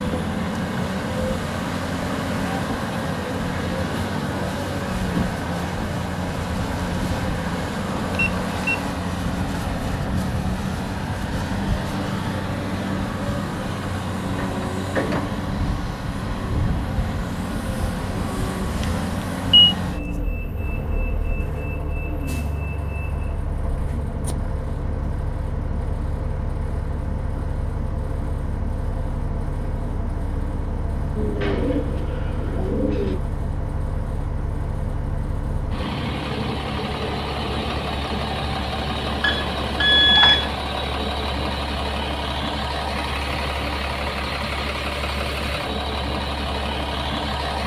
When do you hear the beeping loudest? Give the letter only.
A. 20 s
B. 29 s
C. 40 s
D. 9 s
C.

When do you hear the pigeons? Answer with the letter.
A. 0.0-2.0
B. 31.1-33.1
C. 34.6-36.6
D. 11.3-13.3
B.